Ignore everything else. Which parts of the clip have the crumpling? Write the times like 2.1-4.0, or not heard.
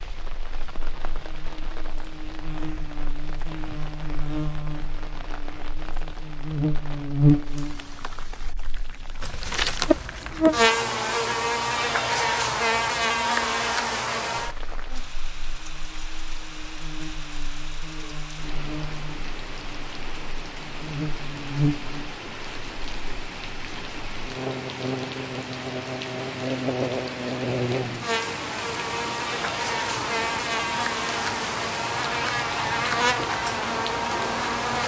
9.2-10.7.